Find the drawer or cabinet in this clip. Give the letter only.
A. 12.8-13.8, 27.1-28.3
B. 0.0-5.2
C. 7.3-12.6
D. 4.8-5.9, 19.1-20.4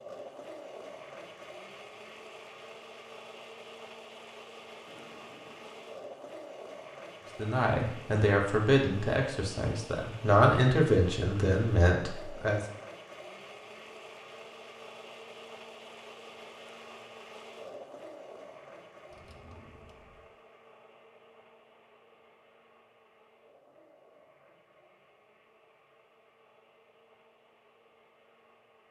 D.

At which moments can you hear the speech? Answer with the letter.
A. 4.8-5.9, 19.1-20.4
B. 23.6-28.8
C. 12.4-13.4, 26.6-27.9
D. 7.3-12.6
D.